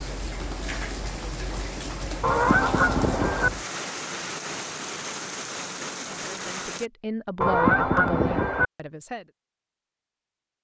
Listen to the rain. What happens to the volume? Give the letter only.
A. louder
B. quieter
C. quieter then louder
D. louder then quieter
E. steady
E.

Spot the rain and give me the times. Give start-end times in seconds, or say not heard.
0.0-6.9.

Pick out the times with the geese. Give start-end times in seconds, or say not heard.
2.2-3.5, 7.4-8.7.